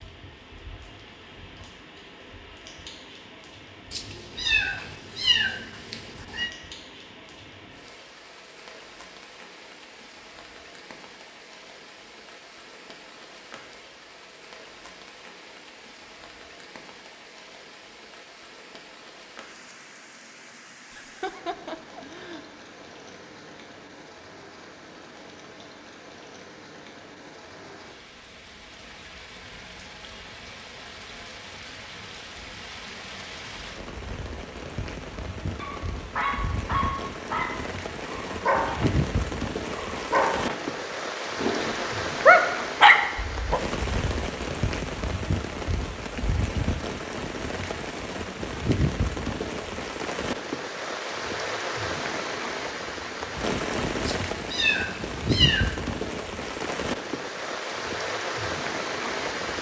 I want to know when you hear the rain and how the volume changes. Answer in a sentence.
You can hear the rain from 0.0 to 59.5 s, getting louder.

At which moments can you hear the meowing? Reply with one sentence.
You can hear the meowing from 3.9 to 6.5 s and from 54.0 to 55.8 s.